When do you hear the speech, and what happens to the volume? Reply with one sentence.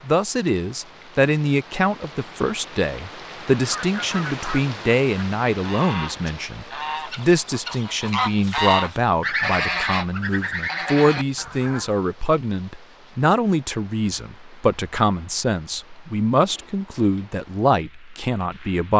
You can hear the speech from 0.1 to 18.9 s, at a steady volume.